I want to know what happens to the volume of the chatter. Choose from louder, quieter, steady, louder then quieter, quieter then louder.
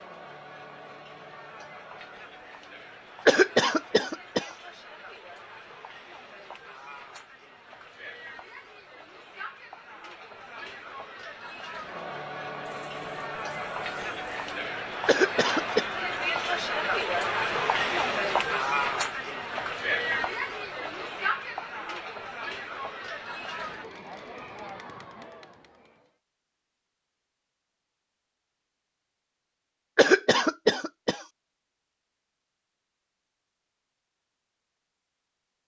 louder then quieter.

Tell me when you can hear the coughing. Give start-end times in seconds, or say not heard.
3.2-4.5, 15.1-15.8, 29.9-31.2.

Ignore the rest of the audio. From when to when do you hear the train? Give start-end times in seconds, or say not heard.
not heard.